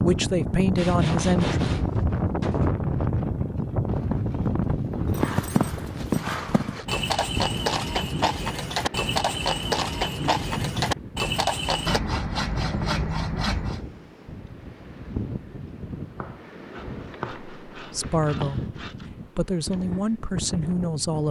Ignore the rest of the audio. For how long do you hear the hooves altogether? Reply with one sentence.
The hooves can be heard for 8 seconds in total.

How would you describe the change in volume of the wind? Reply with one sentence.
The loudness of the wind goes down.